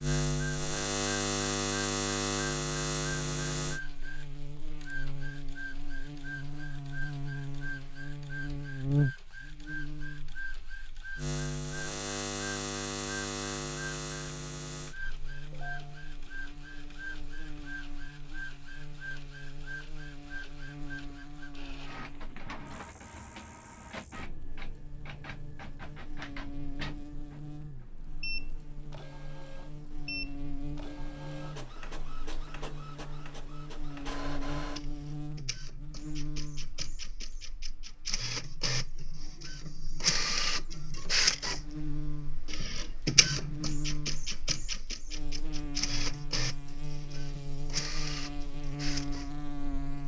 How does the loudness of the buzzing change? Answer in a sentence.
The volume of the buzzing goes down, then up.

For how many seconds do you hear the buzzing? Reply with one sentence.
The buzzing can be heard for 50 seconds in total.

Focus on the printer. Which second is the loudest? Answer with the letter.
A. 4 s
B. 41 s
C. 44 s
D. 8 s
B.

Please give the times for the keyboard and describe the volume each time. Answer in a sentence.
You can't hear the keyboard here.